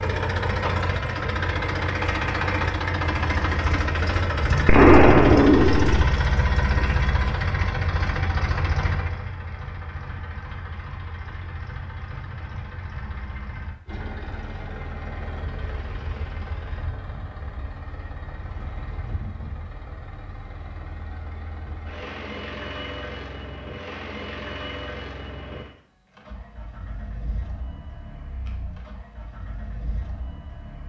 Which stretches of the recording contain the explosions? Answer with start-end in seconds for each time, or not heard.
4.7-6.0.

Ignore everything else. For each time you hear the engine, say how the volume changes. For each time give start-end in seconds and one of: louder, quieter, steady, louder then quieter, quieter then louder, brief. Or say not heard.
0.0-30.8 quieter.